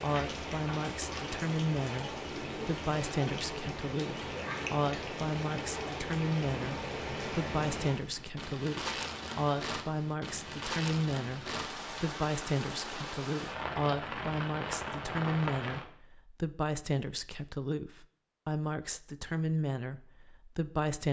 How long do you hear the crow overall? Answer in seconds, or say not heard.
not heard.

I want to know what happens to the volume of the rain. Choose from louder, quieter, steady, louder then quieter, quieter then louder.
steady.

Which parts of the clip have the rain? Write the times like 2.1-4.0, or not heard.
0.0-15.8.